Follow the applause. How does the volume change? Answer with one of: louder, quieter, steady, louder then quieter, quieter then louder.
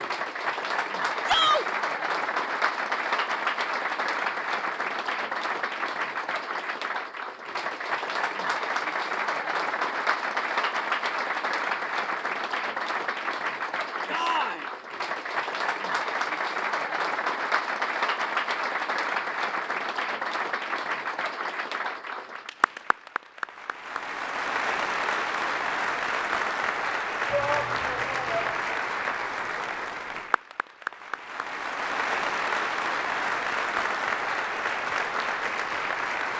steady.